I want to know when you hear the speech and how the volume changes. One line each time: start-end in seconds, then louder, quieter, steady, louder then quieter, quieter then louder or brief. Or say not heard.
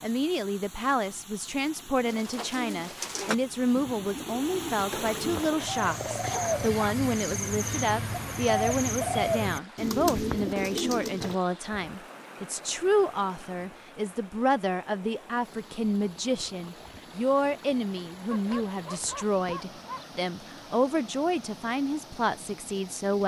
0.0-23.2 steady.